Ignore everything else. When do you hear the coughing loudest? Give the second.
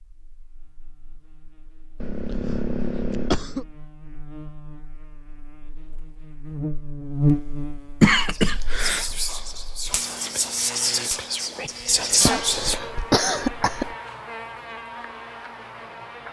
8 s.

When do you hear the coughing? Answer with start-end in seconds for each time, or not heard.
1.9-3.7, 8.0-9.1, 12.2-13.9.